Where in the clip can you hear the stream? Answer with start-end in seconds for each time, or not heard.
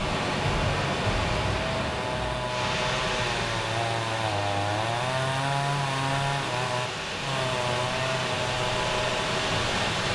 0.0-10.1.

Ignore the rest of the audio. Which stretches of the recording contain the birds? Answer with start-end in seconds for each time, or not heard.
not heard.